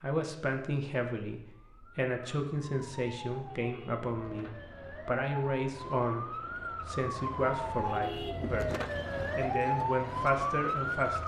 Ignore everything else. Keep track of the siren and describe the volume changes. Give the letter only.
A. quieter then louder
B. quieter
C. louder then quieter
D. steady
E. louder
E.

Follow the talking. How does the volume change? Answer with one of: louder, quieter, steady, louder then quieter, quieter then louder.
steady.